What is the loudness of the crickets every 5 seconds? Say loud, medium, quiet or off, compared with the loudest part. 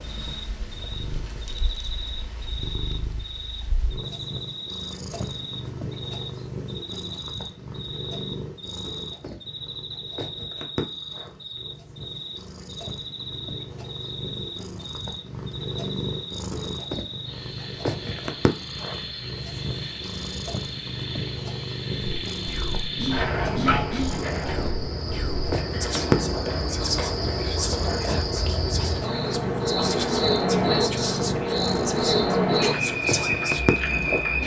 quiet, quiet, quiet, quiet, medium, medium, loud.